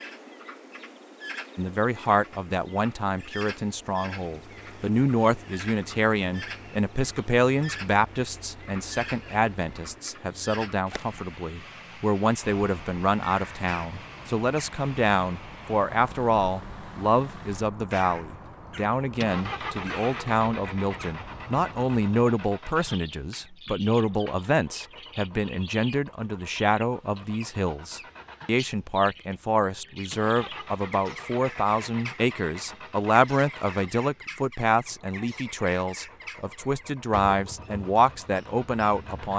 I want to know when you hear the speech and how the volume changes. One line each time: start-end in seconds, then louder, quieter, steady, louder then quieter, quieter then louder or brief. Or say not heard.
1.6-39.3 steady.